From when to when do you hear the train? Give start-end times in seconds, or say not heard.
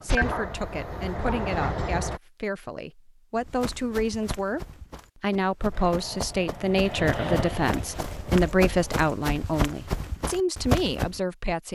0.0-2.2, 5.7-9.1.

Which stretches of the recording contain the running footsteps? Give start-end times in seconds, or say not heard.
3.4-11.2.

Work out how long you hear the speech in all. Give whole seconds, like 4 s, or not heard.
12 s.